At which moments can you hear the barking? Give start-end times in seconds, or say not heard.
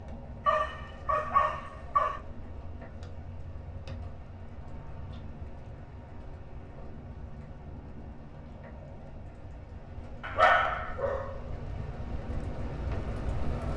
0.5-2.2, 10.2-11.8.